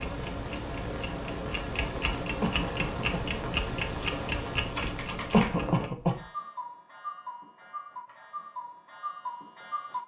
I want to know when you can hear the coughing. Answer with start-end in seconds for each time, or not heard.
2.4-3.2, 5.3-6.2.